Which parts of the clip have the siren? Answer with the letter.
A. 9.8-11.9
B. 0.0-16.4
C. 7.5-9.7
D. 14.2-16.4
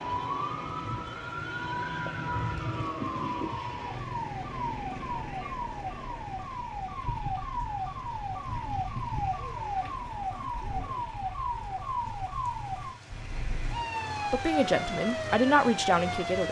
B.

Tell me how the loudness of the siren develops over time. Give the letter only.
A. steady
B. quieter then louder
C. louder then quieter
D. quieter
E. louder
A.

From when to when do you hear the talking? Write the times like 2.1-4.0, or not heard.
14.2-16.4.